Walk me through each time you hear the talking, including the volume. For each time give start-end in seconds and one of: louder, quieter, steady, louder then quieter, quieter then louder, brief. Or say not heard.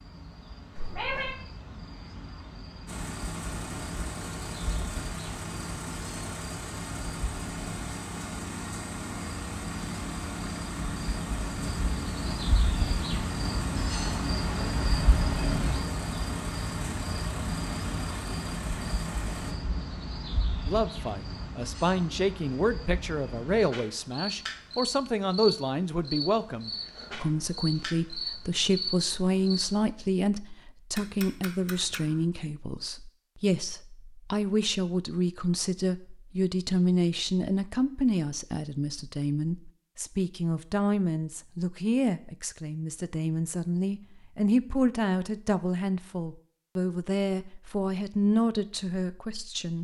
20.6-49.7 steady.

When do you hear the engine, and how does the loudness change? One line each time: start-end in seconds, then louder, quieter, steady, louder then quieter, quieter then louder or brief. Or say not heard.
2.9-19.6 steady.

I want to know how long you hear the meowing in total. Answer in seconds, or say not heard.
2 s.